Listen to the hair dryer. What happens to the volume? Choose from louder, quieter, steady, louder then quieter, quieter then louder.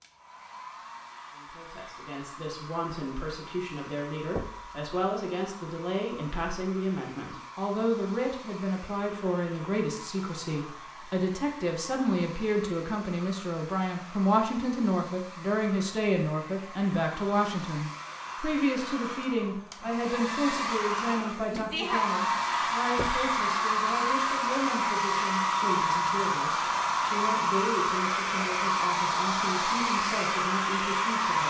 louder.